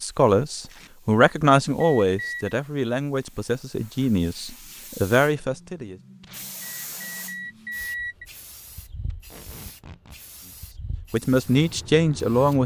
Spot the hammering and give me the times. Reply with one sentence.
You can't hear the hammering here.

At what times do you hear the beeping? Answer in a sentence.
The beeping can be heard from 1.8 to 2.5 s and from 6.6 to 8.2 s.